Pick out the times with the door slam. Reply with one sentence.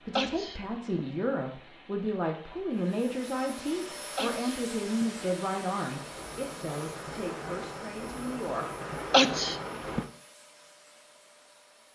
The door slam can't be heard in this clip.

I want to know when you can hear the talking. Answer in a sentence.
You can hear the talking from 0.0 to 8.8 s.